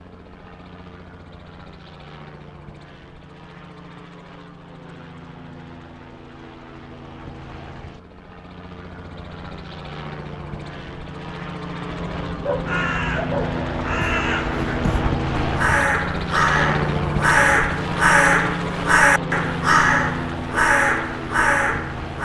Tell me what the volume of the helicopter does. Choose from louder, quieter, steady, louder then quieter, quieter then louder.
louder.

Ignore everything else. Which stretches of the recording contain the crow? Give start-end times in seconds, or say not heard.
11.8-22.1.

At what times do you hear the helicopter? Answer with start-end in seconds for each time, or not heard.
0.0-22.1.